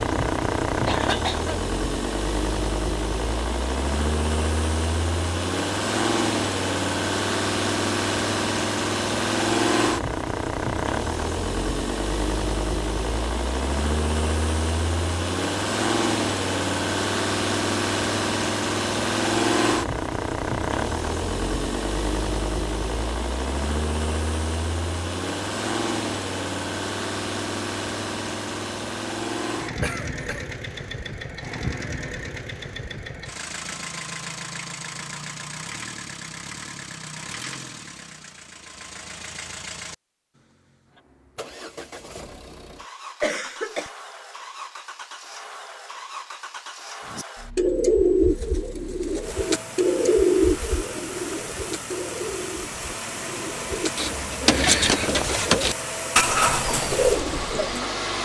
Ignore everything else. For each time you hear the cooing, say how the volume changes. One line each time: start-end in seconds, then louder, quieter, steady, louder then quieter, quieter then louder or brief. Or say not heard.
47.1-57.9 quieter then louder.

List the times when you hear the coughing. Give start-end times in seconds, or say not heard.
0.8-1.6, 29.8-30.4, 43.2-43.9.